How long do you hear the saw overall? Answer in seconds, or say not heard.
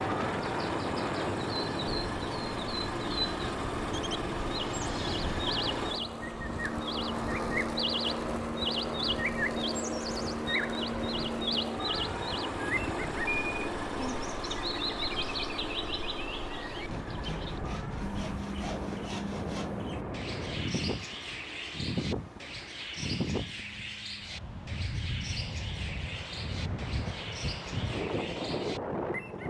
3 s.